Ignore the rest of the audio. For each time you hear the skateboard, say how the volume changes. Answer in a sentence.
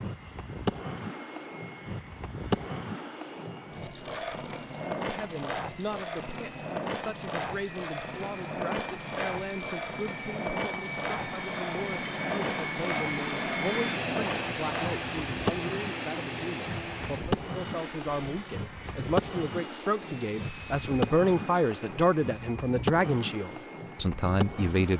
The skateboard can be heard from 0.0 to 24.9 s, at a steady volume.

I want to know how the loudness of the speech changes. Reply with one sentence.
The loudness of the speech goes up.